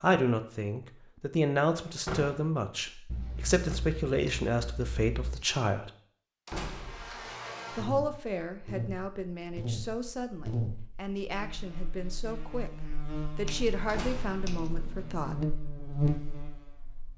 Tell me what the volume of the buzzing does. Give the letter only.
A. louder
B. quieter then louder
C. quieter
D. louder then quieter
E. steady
B.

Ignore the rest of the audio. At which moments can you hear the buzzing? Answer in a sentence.
You can hear the buzzing from 6.7 to 17.1 s.